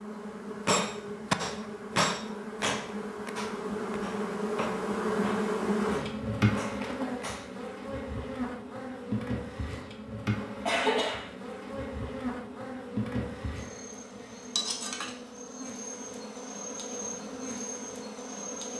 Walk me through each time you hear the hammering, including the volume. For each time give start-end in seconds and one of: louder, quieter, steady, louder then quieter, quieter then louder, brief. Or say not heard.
0.7-7.5 quieter.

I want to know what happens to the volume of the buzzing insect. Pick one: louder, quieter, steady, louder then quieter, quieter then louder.
louder then quieter.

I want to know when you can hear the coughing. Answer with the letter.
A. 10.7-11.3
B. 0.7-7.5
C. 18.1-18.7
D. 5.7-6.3
A.